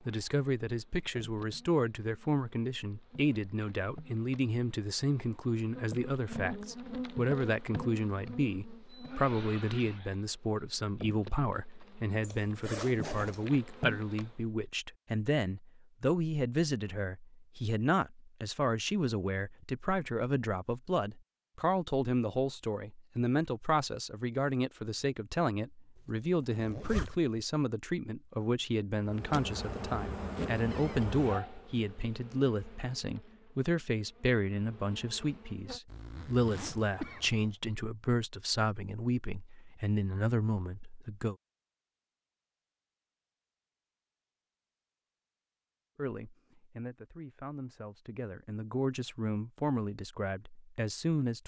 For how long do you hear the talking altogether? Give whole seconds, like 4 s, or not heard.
47 s.